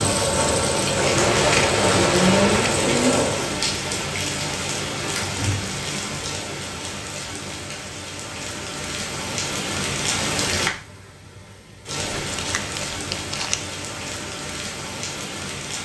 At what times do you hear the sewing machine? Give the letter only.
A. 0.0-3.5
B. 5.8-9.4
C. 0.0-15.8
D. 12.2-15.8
A.